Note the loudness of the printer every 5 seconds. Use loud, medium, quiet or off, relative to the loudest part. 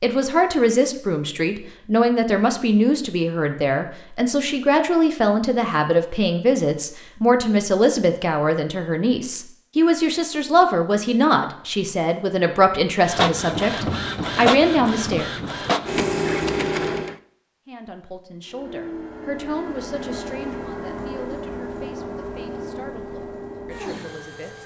off, off, loud, loud, medium.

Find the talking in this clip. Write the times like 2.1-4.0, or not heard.
0.0-15.3, 17.6-24.6.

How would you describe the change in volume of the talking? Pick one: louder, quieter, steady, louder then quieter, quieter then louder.
quieter.